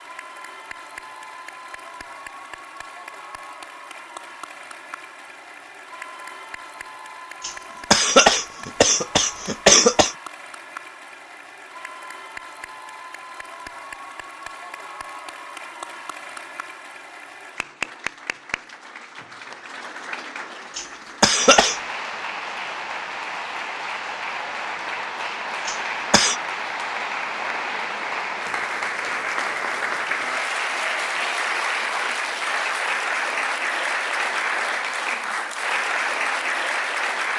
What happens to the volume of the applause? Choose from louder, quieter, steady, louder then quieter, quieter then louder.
louder.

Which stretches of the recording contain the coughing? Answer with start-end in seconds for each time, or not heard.
7.4-10.2, 20.8-21.8, 25.6-26.4.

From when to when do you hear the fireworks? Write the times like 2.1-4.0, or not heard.
not heard.